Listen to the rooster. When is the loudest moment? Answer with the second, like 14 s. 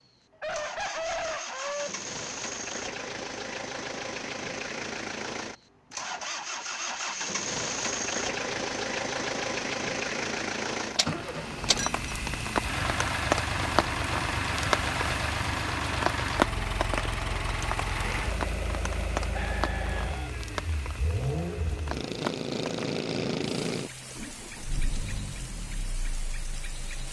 1 s.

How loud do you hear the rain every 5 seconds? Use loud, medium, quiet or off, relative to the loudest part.
off, off, loud, loud, medium, quiet.